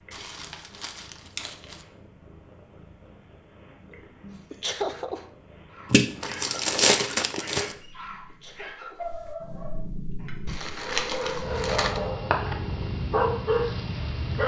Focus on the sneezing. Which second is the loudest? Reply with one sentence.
The volume of the sneezing peaks at 5 seconds.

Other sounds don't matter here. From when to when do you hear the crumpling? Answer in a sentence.
The crumpling can be heard from 0.1 to 1.9 s, from 5.9 to 7.8 s and from 10.4 to 12.0 s.